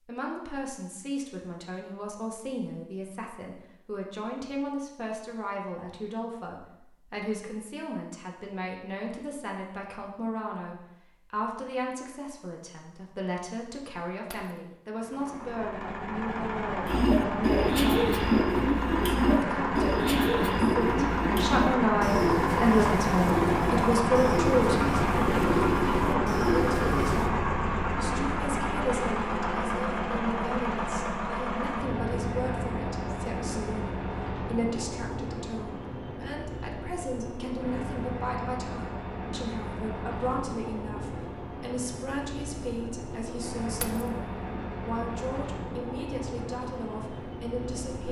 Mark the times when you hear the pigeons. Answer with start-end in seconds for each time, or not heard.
16.9-27.3.